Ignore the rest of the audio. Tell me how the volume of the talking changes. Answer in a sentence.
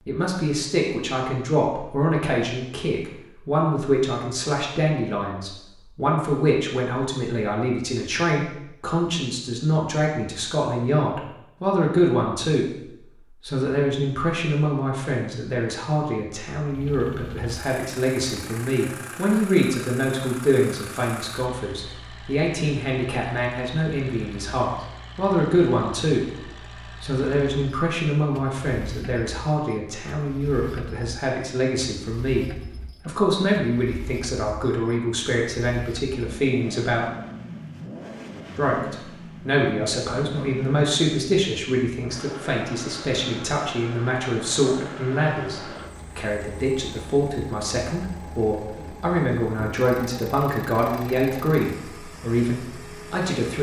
The volume of the talking stays about the same.